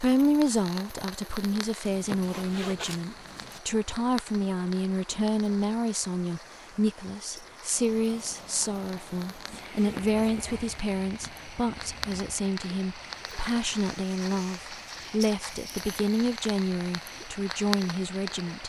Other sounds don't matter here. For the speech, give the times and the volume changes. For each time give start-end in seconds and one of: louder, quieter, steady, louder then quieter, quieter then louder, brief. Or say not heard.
0.0-18.6 steady.